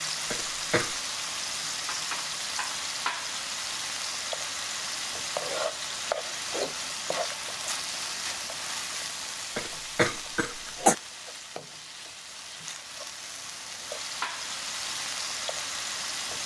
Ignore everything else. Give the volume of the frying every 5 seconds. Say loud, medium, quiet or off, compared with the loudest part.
loud, loud, medium, loud.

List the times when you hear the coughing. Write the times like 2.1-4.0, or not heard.
0.3-0.9, 9.6-10.9.